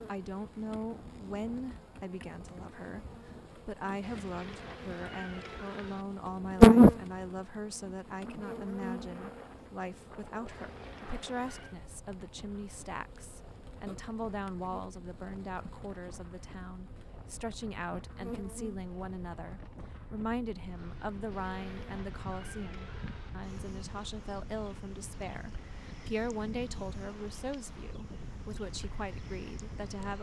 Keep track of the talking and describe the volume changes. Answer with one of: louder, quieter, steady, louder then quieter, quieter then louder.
steady.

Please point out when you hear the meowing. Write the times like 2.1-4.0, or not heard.
4.0-6.0, 10.4-11.8, 21.3-23.3.